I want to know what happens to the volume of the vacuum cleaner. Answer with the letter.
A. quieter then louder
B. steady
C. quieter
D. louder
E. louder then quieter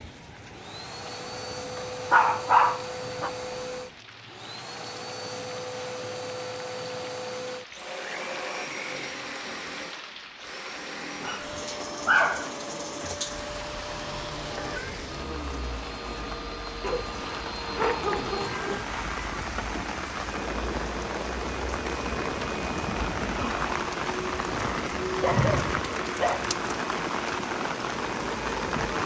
B.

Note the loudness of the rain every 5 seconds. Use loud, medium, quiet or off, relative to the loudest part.
quiet, quiet, medium, medium, loud, loud.